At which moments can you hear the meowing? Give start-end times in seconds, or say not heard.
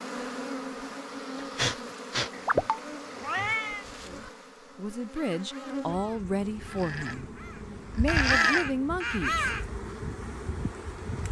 2.3-3.9.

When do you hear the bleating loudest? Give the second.
8 s.